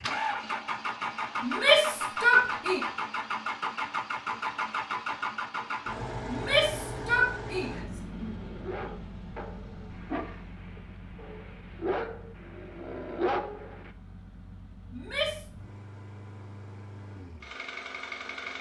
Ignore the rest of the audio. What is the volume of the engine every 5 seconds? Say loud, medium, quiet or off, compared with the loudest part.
loud, medium, quiet, medium.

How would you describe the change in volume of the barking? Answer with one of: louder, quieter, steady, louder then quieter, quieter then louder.
quieter then louder.